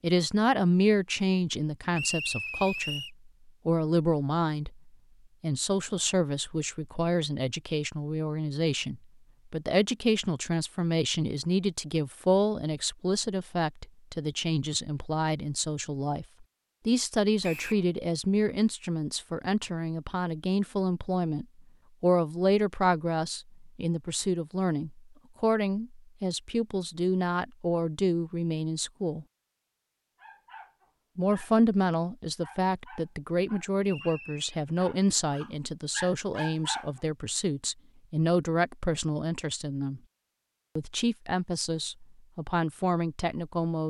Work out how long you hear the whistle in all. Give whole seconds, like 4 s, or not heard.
2 s.